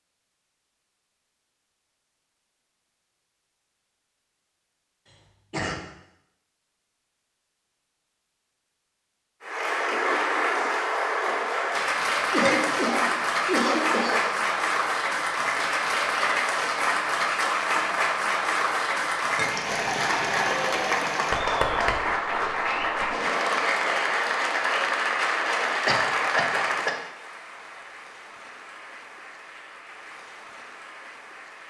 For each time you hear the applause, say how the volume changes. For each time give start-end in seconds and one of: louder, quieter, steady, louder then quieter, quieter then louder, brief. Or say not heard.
9.4-31.6 quieter.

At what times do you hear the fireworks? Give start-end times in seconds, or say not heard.
not heard.